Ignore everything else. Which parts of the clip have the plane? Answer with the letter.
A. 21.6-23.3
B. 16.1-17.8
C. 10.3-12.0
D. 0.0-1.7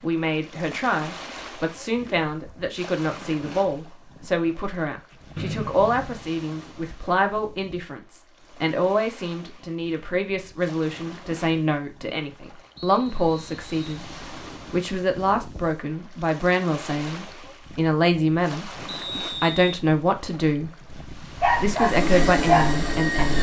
A.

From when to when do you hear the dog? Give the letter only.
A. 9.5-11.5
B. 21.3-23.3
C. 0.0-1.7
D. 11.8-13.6
B.